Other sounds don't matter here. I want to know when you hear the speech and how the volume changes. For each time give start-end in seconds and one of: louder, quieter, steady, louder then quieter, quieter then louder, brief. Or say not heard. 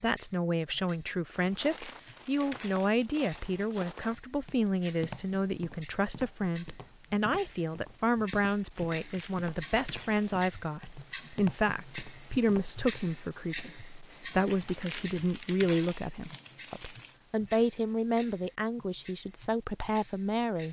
0.0-20.6 steady.